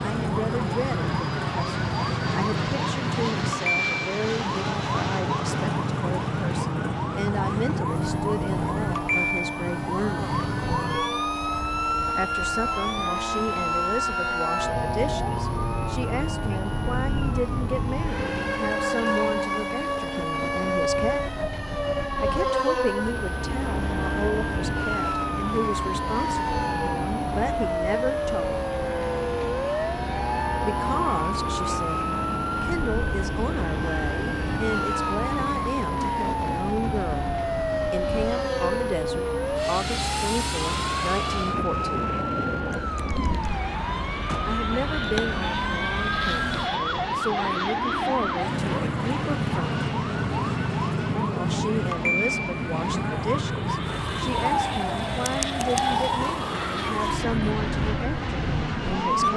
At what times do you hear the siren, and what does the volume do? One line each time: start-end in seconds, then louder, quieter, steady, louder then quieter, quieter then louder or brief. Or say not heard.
0.0-59.3 steady.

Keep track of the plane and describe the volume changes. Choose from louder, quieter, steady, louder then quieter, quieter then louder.
steady.